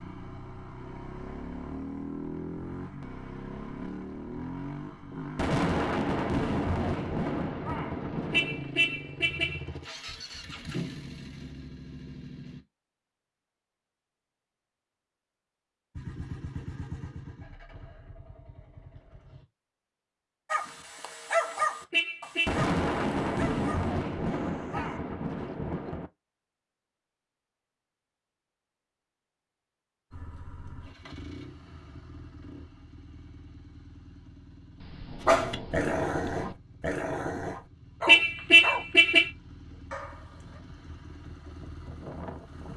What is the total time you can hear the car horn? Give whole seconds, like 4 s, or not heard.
3 s.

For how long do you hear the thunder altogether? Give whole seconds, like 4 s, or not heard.
9 s.